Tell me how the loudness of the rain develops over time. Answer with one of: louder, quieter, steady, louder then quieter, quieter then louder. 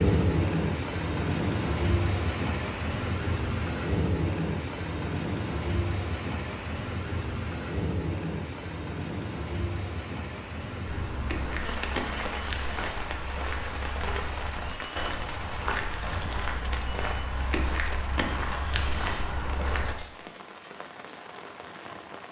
quieter.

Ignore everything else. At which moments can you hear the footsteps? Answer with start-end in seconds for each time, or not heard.
10.8-19.9.